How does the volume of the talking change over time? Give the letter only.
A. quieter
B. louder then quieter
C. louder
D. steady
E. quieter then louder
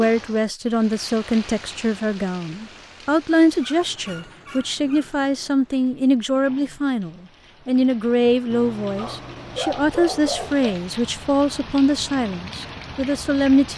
D.